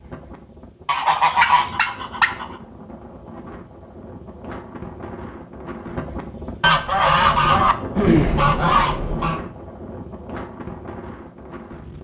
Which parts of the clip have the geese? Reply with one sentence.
The geese can be heard from 0.8 to 2.5 s and from 6.6 to 9.4 s.